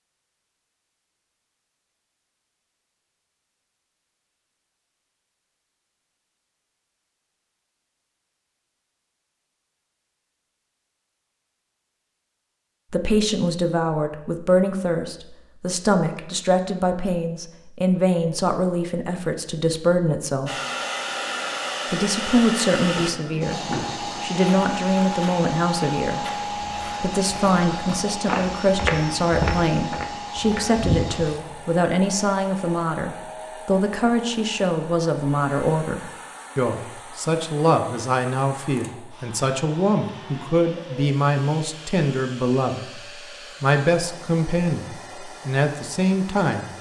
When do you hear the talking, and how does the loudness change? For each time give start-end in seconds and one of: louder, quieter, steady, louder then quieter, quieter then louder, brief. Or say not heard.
12.9-20.5 steady
21.9-46.7 steady.